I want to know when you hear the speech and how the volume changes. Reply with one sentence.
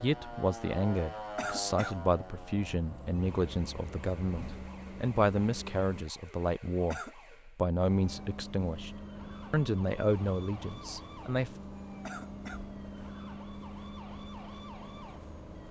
You can hear the speech from 0.0 to 11.5 s, at a steady volume.